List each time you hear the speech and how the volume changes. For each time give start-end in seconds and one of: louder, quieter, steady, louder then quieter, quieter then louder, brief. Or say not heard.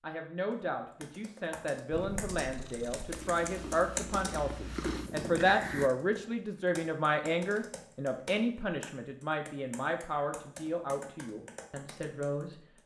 0.0-12.8 louder then quieter.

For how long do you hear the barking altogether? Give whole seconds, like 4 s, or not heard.
not heard.